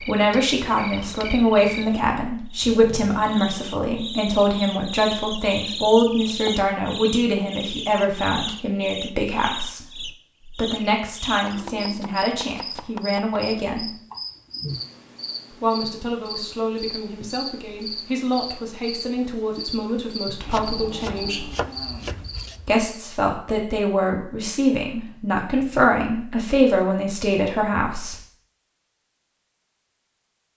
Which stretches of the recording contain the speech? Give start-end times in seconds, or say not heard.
0.1-13.9, 15.5-21.5, 22.6-28.1.